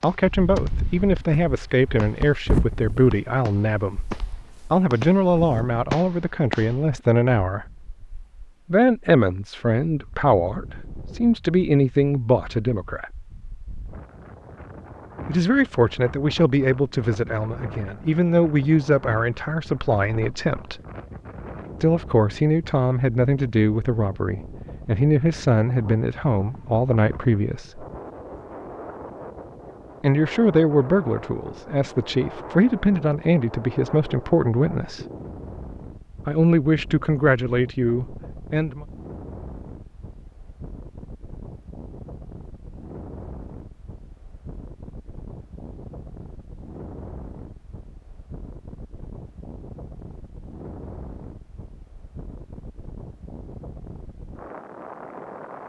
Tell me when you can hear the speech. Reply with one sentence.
You can hear the speech from 0.0 to 7.7 s, from 8.7 to 13.1 s, from 15.2 to 20.8 s, from 21.8 to 27.9 s, from 30.0 to 35.0 s and from 36.2 to 38.9 s.